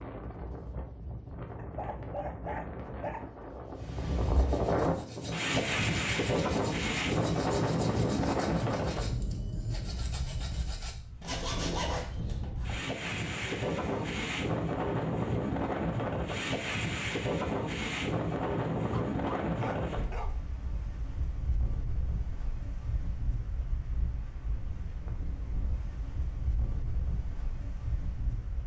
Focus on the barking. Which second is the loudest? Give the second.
2 s.